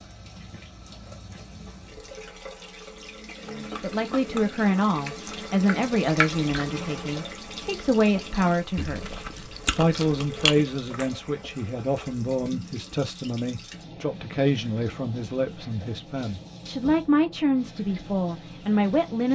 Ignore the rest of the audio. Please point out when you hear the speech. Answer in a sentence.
The speech can be heard from 3.5 to 9.2 s and from 9.8 to 19.2 s.